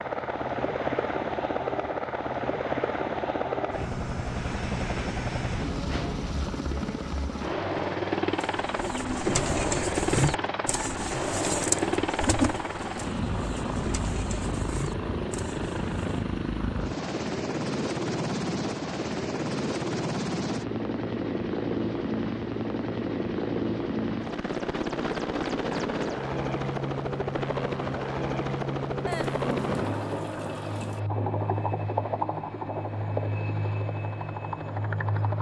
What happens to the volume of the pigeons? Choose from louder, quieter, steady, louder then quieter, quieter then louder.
quieter.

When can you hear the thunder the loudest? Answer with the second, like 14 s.
30 s.